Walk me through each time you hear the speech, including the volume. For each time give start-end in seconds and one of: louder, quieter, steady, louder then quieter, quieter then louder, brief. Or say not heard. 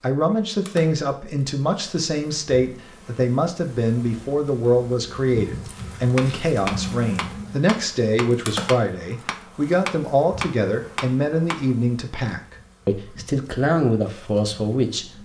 0.0-15.1 steady.